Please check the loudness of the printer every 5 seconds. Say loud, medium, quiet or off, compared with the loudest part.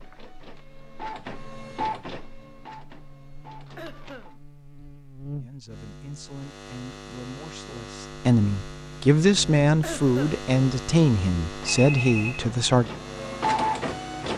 medium, off, loud.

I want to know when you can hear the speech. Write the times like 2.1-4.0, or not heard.
5.3-12.9.